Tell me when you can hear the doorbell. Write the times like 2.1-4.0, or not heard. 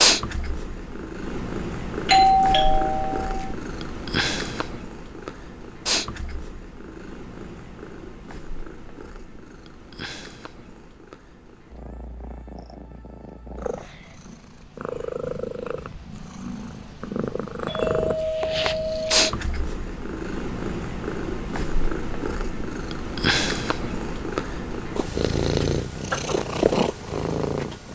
2.0-3.5, 17.6-19.3.